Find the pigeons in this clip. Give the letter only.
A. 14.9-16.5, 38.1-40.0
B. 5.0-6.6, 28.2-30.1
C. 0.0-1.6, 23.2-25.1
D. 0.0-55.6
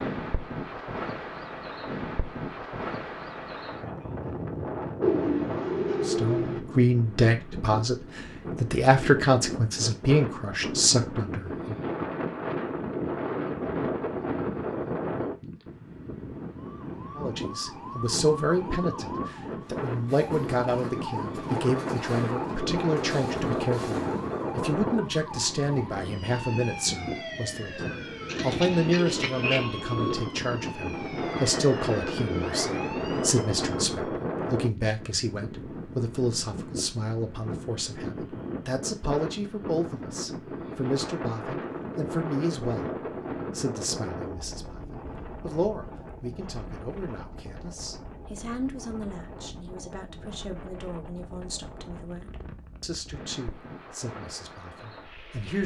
B.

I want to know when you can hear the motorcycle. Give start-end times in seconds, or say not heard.
not heard.